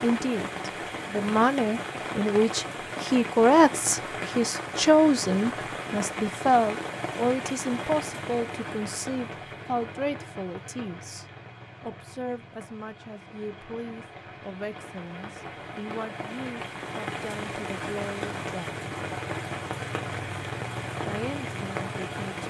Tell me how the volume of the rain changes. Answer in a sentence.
The loudness of the rain goes down, then up.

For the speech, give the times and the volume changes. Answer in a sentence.
The speech can be heard from 0.0 to 18.9 s, getting quieter; and briefly from 21.1 to 22.4 s.